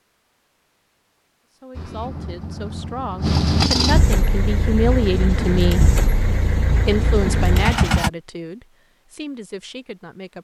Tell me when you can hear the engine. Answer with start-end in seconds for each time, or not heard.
1.8-8.1.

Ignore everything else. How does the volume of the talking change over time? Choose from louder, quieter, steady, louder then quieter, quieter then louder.
louder then quieter.